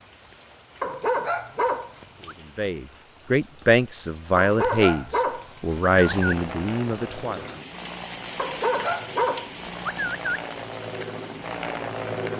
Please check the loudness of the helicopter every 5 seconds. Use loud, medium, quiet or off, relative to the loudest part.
off, medium, loud.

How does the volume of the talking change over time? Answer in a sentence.
The loudness of the talking goes down.